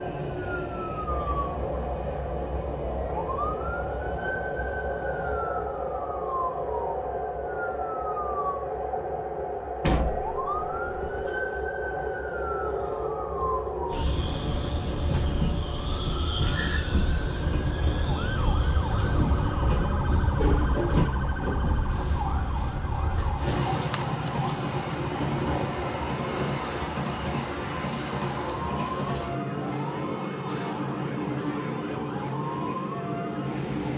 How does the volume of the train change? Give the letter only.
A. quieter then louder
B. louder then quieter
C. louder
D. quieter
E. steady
E.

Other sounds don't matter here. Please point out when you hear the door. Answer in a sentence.
You can hear the door from 9.8 to 11.3 s and from 20.4 to 21.6 s.